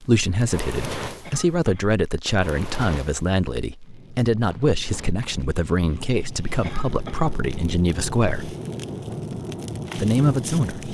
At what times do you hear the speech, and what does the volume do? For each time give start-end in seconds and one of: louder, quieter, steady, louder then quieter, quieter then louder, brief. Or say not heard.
0.0-8.6 steady
9.9-10.8 brief.